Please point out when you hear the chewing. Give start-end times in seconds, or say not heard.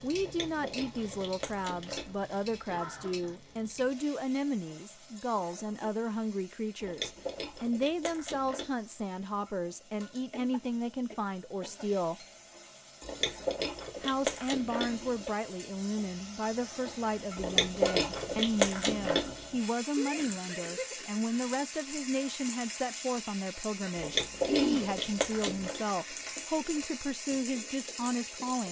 0.1-2.1, 6.8-8.7, 13.0-15.3, 17.4-19.4, 23.9-25.8.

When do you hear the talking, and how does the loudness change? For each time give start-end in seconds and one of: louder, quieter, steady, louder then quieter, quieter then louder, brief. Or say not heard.
0.0-12.2 steady
14.0-28.6 steady.